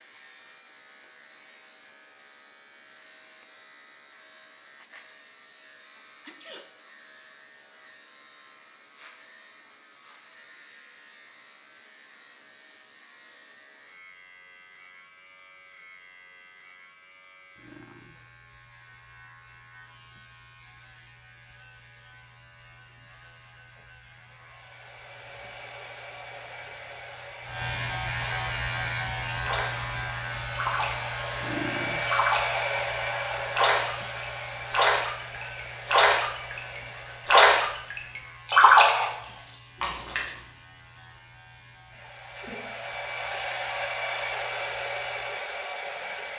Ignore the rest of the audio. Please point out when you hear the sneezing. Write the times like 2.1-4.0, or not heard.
6.2-6.7.